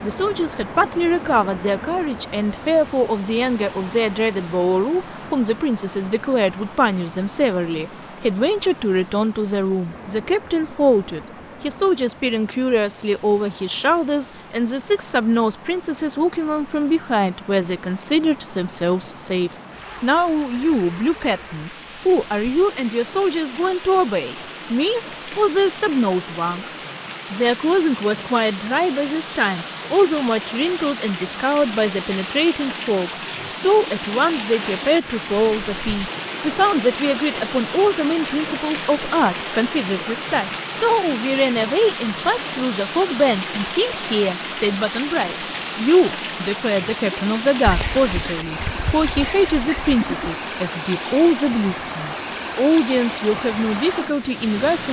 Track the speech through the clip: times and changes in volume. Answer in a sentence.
The speech can be heard from 0.0 to 54.8 s, at a steady volume.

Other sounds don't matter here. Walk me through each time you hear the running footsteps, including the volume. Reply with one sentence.
You can't hear the running footsteps here.